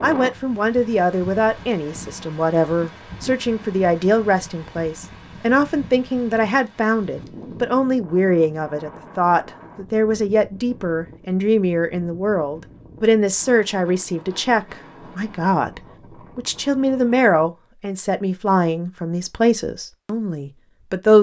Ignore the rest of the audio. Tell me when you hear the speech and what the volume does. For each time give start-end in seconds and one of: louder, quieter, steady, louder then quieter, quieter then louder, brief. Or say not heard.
0.0-21.1 steady.